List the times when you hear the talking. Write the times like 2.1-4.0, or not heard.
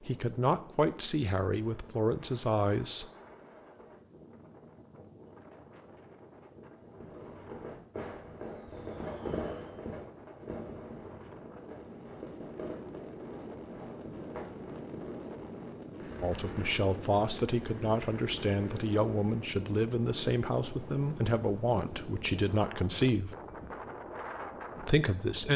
0.0-3.0, 16.2-23.4, 24.9-25.5.